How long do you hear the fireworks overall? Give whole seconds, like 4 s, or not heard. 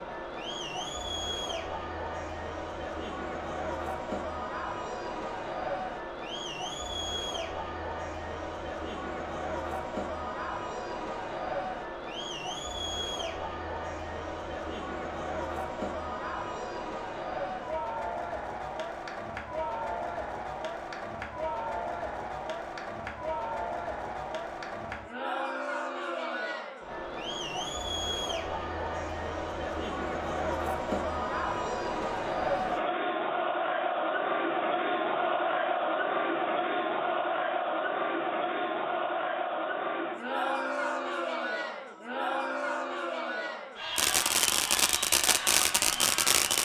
3 s.